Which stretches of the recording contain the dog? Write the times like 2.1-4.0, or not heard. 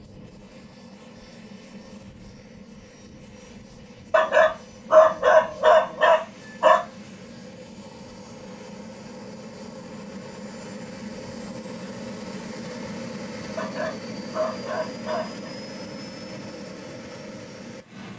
4.1-6.8, 13.6-15.5.